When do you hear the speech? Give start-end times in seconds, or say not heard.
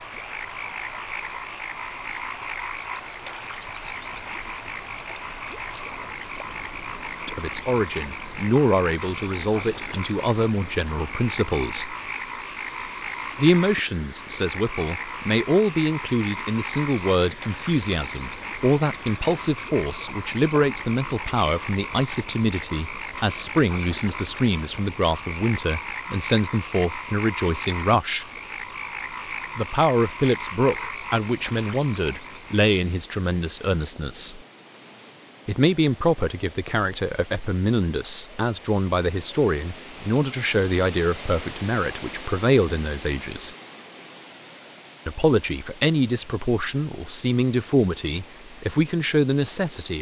7.2-11.9, 13.3-28.2, 29.6-34.4, 35.5-43.5, 45.0-49.9.